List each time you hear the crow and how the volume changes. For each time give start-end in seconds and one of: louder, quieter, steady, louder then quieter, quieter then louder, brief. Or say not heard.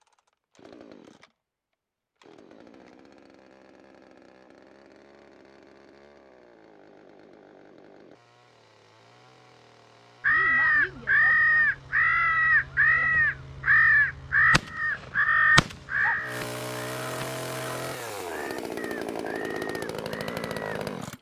10.2-20.8 quieter.